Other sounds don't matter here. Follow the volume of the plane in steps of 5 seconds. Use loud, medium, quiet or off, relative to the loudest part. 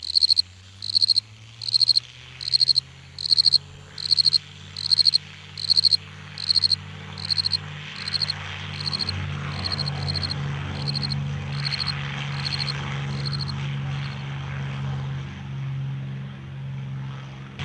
quiet, medium, loud, loud.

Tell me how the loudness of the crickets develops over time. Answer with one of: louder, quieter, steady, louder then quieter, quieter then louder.
quieter.